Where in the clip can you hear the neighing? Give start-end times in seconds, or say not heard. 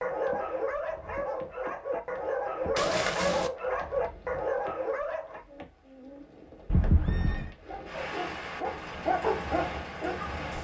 2.8-3.5, 6.7-7.5.